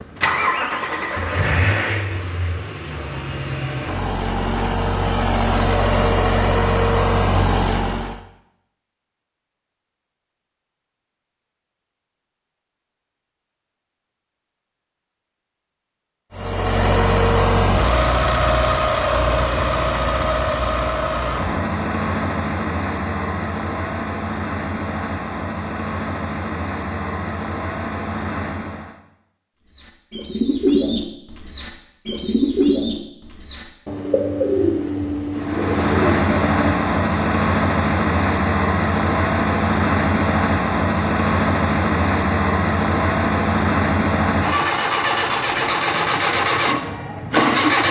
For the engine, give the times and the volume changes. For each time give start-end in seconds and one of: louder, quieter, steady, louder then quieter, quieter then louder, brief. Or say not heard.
0.0-8.2 quieter then louder
16.3-28.9 quieter
35.4-47.8 steady.